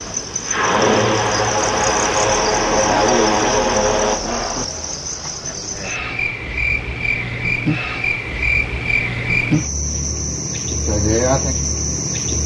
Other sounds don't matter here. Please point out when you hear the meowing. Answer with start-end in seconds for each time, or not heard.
not heard.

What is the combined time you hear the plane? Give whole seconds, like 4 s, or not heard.
5 s.